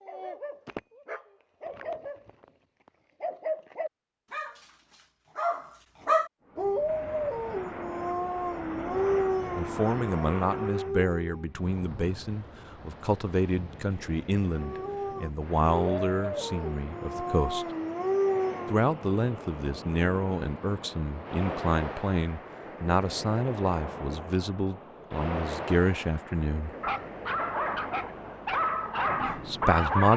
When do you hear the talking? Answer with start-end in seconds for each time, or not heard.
9.6-17.6, 18.7-26.7, 29.2-30.1.